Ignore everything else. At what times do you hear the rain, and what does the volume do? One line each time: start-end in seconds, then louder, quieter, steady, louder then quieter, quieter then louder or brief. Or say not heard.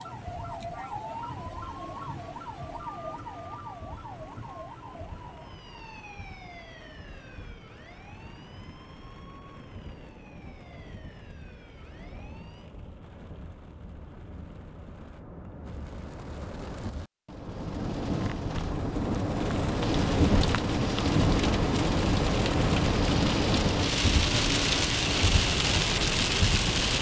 0.0-26.9 louder.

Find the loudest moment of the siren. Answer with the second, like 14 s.
1 s.